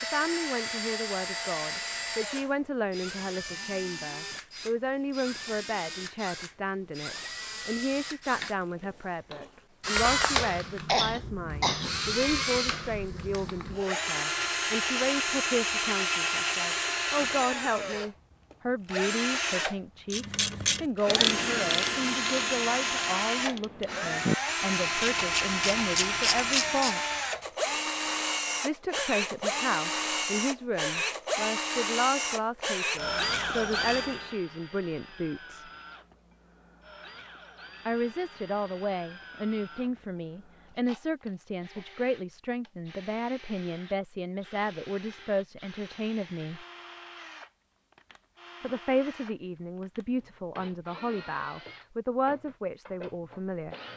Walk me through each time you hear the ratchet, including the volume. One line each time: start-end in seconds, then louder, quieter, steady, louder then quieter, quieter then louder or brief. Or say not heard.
20.1-26.9 quieter then louder.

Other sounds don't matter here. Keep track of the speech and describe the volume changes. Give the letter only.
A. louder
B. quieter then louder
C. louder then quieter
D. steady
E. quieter
D.